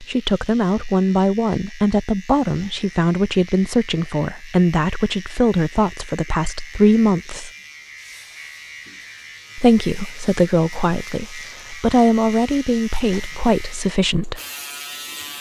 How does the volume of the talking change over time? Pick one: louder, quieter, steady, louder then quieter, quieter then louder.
steady.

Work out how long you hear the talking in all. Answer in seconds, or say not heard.
12 s.